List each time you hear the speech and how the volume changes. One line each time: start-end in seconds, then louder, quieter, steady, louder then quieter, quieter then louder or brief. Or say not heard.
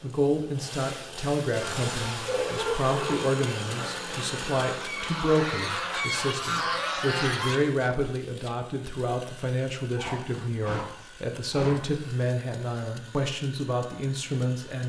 0.0-14.8 steady.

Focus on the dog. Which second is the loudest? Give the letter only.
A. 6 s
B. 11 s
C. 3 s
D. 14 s
C.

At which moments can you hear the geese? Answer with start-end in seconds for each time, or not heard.
1.6-7.6.